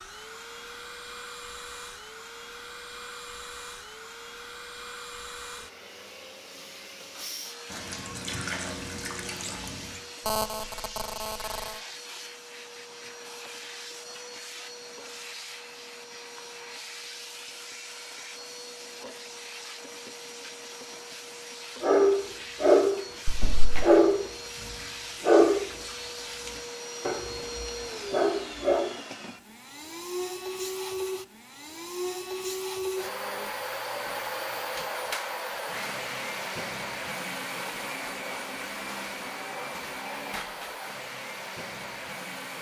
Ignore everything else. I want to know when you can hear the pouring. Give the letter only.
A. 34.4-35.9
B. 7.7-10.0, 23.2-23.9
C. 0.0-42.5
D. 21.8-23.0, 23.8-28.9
B.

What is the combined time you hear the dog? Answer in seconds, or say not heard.
6 s.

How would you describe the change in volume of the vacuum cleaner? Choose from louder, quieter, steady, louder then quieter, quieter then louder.
louder.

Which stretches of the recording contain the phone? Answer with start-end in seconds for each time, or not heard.
10.2-11.8.